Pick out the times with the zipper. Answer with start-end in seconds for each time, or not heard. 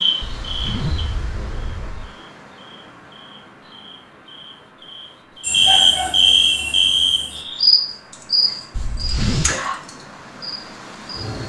0.2-2.1, 8.7-9.6.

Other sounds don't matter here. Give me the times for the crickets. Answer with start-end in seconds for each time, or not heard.
0.0-11.4.